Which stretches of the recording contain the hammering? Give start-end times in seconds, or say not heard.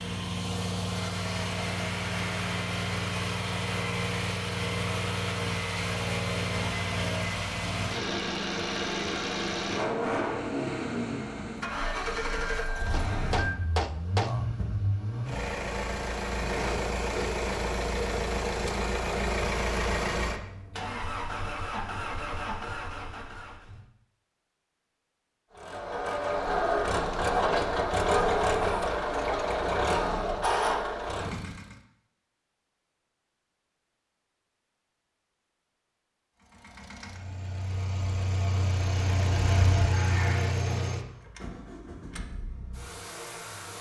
12.9-14.4.